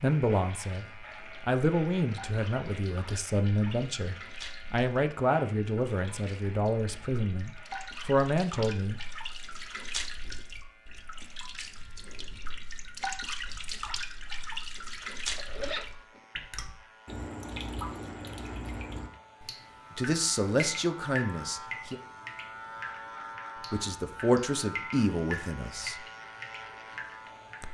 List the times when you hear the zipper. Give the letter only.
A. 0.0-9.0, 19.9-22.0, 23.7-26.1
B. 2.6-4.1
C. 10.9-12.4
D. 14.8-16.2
D.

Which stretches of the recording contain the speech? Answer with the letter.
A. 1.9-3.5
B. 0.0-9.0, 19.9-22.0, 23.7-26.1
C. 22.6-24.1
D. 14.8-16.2
B.